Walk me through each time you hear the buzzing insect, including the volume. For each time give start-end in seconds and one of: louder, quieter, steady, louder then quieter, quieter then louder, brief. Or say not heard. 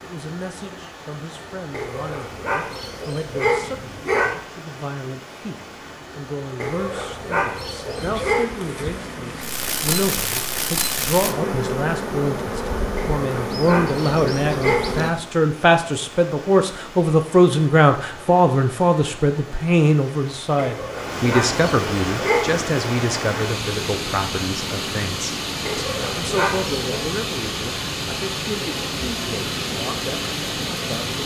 8.0-15.2 louder
28.6-31.2 brief.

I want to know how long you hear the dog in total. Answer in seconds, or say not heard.
10 s.